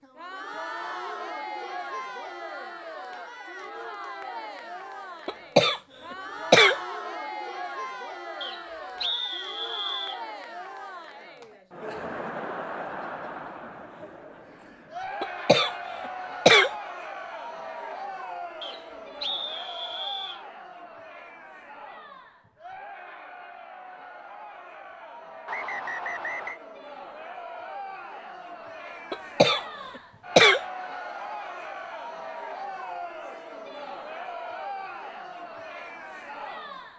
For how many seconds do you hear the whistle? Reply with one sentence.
The whistle can be heard for 5 seconds in total.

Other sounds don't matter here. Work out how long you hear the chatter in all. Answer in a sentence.
You can hear the chatter for 37 seconds altogether.